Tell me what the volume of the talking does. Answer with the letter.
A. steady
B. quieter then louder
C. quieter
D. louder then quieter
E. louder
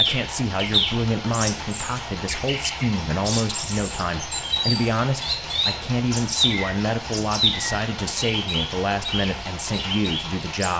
A.